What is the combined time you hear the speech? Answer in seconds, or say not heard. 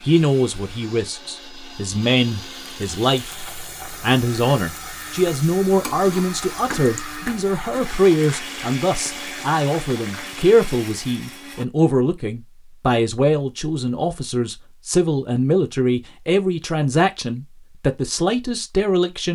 19 s.